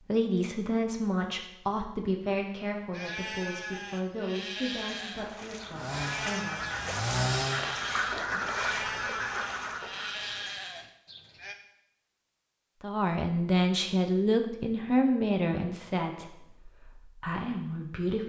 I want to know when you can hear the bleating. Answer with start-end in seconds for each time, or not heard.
2.9-11.6.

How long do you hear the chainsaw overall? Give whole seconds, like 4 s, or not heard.
2 s.